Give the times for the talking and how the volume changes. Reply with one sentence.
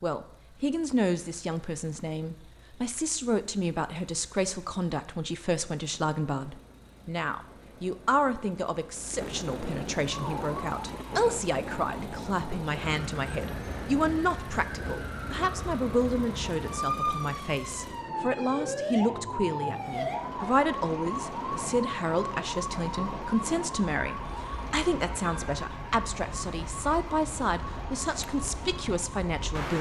The talking can be heard from 0.0 to 29.7 s, at a steady volume.